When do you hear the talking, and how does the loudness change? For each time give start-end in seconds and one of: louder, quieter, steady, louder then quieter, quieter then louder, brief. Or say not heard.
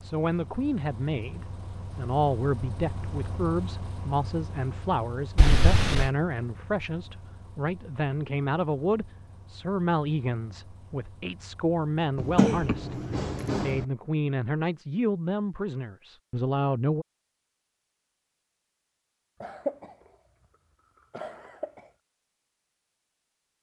0.0-17.1 steady.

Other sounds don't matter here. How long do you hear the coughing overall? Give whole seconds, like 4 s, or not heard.
4 s.